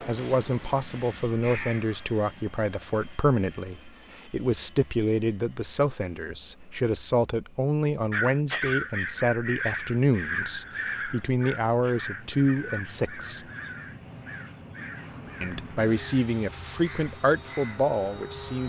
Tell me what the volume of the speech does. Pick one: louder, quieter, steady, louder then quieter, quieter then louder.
steady.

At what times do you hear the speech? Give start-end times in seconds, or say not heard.
0.1-13.4, 15.4-18.6.